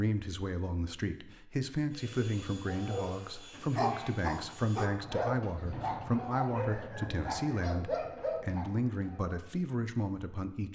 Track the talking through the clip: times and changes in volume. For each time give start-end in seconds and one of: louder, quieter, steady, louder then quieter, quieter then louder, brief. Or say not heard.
0.0-10.7 steady.